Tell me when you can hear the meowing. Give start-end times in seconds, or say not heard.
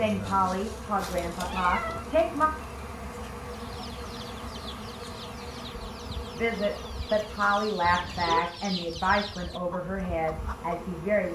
0.9-2.0, 7.8-8.6.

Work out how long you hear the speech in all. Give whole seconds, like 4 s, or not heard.
7 s.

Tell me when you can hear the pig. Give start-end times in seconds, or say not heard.
not heard.